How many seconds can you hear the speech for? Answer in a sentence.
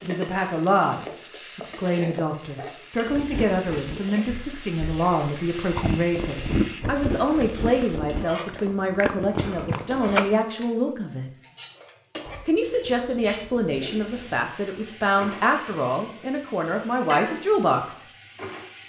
You can hear the speech for 17 seconds altogether.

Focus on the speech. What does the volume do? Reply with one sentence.
The volume of the speech stays about the same.